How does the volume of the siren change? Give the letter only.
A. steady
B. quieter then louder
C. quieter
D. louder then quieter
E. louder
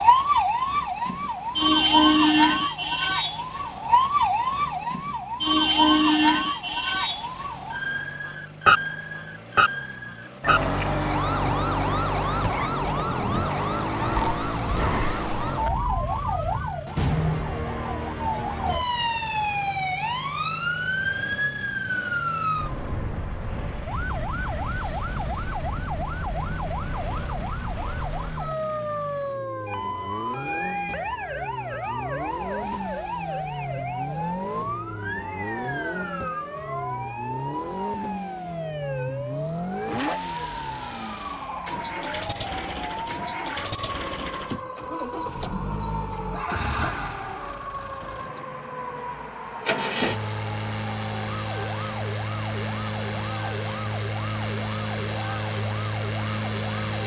C.